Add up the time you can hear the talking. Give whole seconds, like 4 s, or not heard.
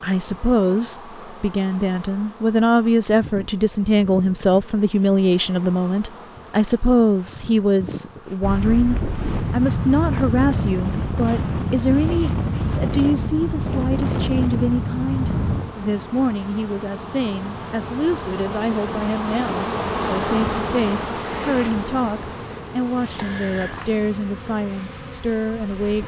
26 s.